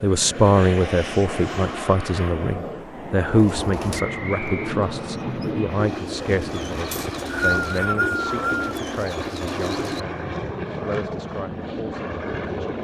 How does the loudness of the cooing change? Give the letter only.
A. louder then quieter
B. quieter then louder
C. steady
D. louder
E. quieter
C.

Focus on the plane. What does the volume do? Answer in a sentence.
The loudness of the plane stays about the same.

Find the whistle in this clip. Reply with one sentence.
The whistle can be heard from 4.0 to 4.8 s and from 6.9 to 8.7 s.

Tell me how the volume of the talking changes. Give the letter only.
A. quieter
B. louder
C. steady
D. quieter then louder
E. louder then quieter
A.